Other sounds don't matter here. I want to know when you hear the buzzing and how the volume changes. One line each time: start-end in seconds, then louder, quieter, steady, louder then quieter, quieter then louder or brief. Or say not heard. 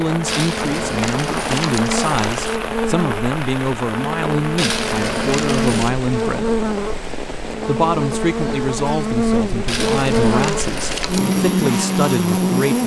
0.1-12.8 louder.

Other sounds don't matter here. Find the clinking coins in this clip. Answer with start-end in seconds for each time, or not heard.
0.2-2.6, 4.5-6.0, 9.7-11.3.